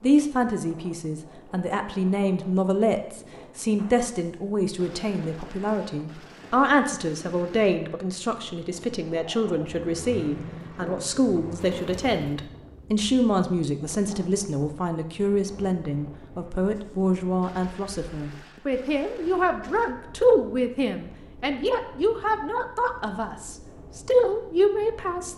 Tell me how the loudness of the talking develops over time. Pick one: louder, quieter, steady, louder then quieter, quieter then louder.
steady.